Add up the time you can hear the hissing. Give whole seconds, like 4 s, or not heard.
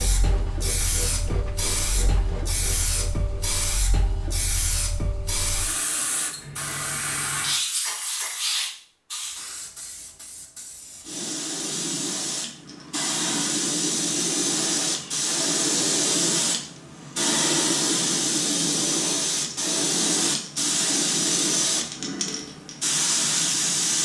24 s.